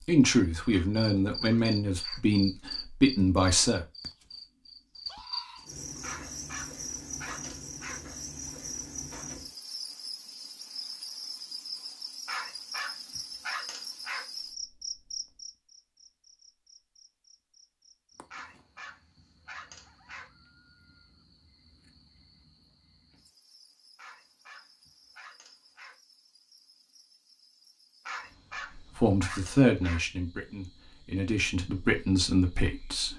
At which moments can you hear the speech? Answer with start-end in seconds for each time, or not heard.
0.1-3.9, 28.8-33.1.